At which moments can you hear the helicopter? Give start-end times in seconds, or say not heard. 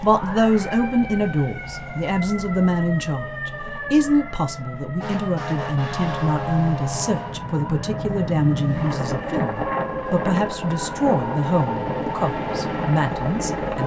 0.1-13.8.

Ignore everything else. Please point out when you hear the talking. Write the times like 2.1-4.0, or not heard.
0.0-13.8.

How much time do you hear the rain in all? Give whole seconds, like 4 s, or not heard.
not heard.